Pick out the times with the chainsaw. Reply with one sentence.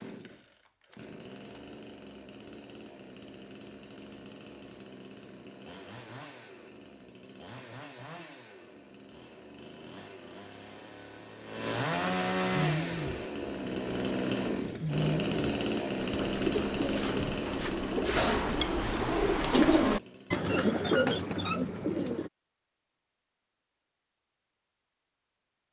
The chainsaw can be heard from 0.0 to 20.5 s.